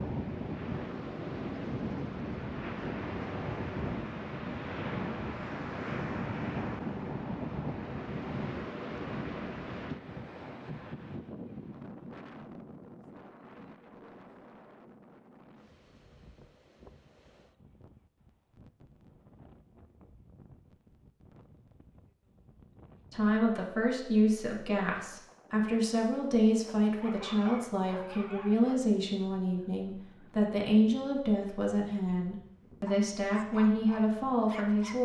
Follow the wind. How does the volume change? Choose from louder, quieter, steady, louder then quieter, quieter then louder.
quieter.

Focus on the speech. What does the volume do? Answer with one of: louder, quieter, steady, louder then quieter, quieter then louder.
steady.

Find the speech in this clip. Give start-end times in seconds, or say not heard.
23.1-35.0.